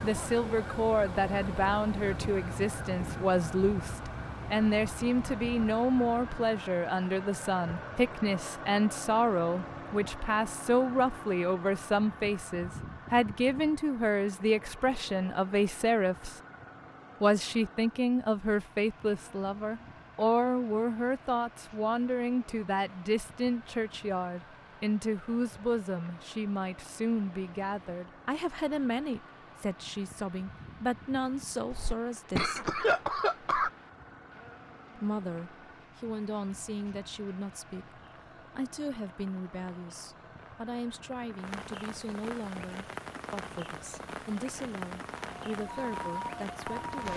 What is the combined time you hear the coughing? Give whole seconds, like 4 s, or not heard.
2 s.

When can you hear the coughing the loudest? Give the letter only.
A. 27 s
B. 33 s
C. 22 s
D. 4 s
B.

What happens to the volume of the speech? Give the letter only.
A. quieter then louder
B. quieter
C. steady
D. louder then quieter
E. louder
B.